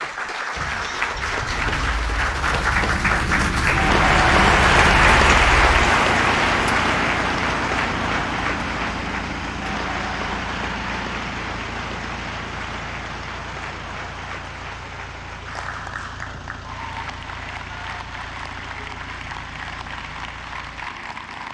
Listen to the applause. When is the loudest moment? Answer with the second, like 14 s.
5 s.